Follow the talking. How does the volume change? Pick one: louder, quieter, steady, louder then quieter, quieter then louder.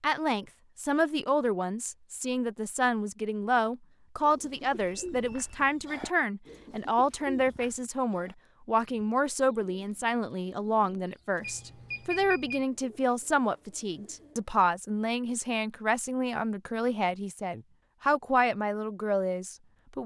steady.